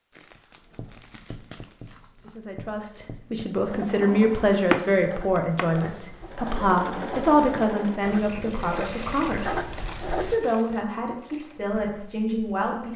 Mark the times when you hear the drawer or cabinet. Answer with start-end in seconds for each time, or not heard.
3.6-5.8.